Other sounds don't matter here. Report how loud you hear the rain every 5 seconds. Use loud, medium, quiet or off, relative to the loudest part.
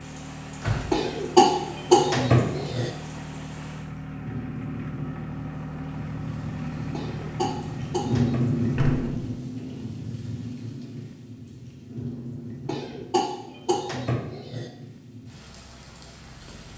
quiet, loud, medium, quiet.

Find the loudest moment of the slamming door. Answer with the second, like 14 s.
1 s.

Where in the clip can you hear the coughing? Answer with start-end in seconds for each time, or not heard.
0.9-2.9, 6.9-8.4, 12.7-14.7.